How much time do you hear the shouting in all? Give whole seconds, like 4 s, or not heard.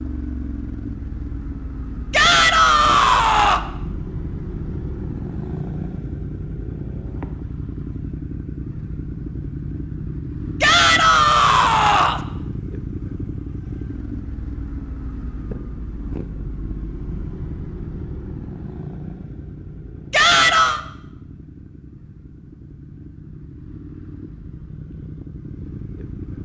4 s.